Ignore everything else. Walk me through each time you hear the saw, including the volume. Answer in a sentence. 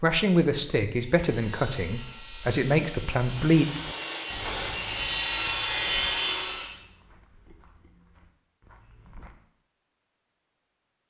You can hear the saw from 0.9 to 6.8 s, getting louder.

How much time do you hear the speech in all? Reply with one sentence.
The speech can be heard for 4 seconds in total.